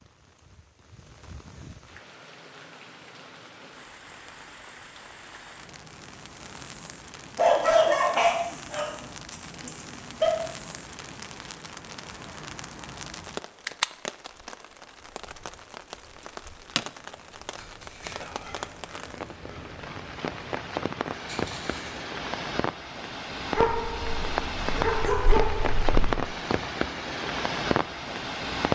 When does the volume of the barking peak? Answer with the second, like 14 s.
8 s.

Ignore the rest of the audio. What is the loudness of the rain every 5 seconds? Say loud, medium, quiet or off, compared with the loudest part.
quiet, quiet, medium, medium, loud, loud.